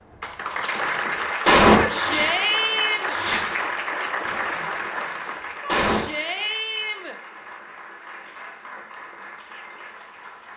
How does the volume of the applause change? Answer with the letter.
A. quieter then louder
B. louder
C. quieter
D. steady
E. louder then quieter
C.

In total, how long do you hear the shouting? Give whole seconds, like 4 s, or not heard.
3 s.